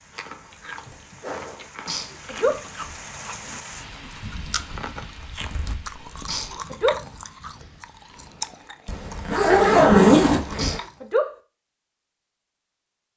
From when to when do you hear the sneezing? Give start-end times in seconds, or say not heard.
1.9-2.6, 6.2-7.0, 10.6-11.3.